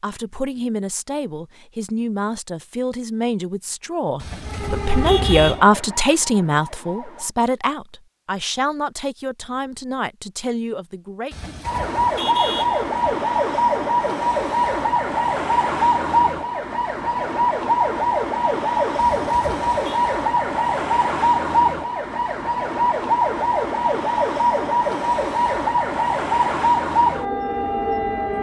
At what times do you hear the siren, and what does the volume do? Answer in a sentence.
The siren can be heard briefly from 4.4 to 7.3 s; and from 11.7 to 28.3 s, at a steady volume.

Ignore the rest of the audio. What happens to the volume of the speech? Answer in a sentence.
The volume of the speech goes up, then down.